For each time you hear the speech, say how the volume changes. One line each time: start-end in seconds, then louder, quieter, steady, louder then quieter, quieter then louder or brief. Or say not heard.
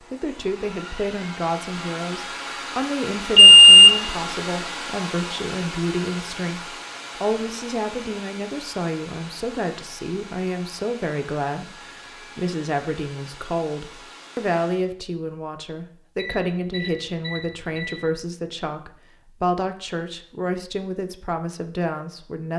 0.0-22.5 steady.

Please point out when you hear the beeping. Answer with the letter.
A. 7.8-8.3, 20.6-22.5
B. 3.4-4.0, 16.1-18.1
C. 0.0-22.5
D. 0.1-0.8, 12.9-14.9
B.